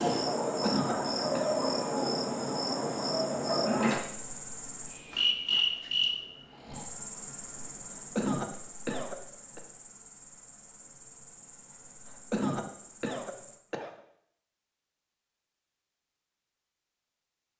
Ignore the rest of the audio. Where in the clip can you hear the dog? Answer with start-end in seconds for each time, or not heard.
not heard.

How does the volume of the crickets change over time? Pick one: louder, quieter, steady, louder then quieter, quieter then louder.
quieter.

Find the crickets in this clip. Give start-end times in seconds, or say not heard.
0.0-13.6.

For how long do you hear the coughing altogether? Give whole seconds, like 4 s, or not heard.
4 s.